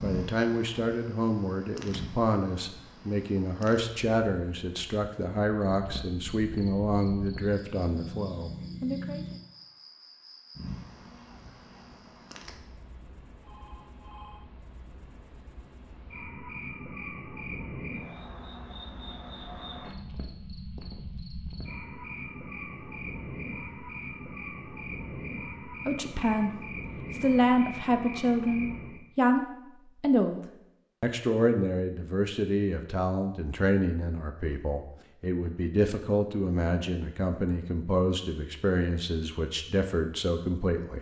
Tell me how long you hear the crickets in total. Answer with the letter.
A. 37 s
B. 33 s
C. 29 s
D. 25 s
C.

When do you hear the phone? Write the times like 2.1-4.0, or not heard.
13.4-14.4.